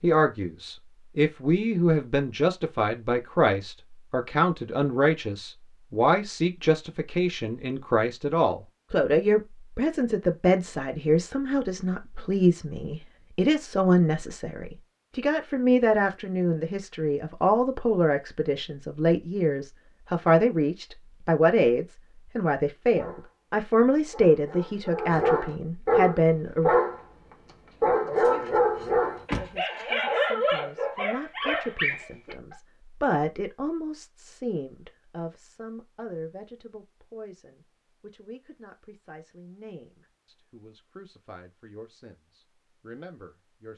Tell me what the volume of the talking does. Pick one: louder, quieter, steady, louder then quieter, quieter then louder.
quieter.